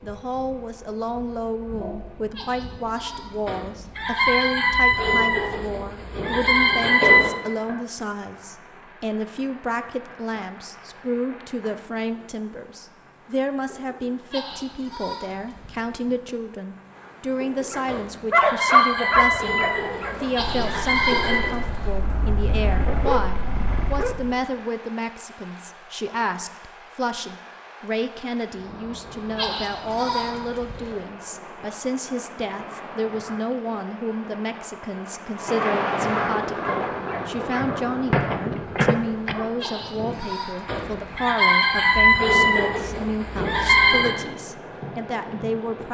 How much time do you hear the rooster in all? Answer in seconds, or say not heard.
11 s.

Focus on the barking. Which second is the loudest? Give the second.
19 s.